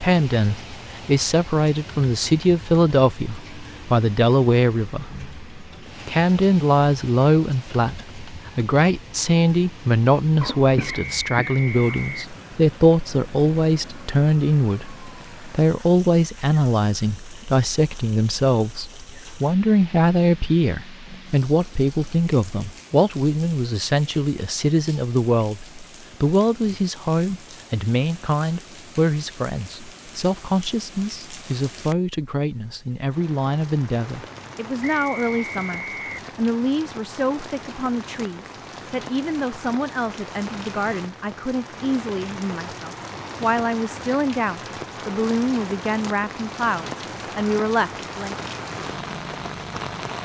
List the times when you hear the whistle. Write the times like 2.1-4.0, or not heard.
10.8-12.3, 34.8-36.2.